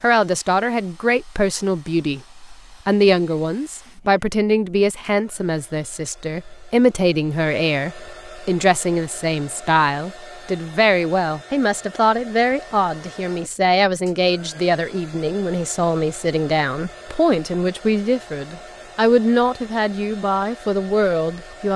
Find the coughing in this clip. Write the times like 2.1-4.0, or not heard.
not heard.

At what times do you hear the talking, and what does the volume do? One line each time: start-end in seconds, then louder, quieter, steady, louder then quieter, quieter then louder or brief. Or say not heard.
0.0-21.7 steady.